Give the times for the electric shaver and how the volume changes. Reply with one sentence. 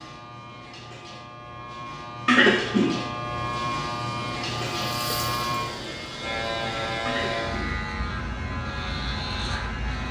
You can hear the electric shaver from 0.0 to 10.0 s, getting louder.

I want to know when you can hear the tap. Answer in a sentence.
You can hear the tap from 3.2 to 7.7 s.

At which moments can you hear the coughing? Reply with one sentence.
You can hear the coughing from 2.2 to 3.1 s and from 7.0 to 7.8 s.